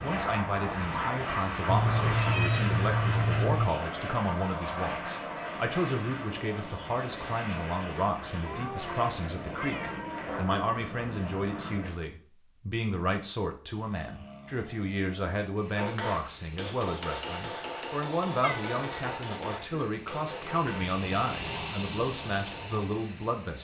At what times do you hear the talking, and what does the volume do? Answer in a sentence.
The talking can be heard from 0.0 to 23.5 s, at a steady volume.